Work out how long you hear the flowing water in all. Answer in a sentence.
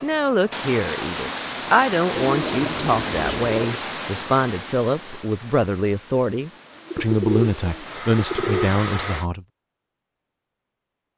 You can hear the flowing water for 9 seconds altogether.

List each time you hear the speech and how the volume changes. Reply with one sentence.
The speech can be heard from 0.0 to 9.4 s, at a steady volume.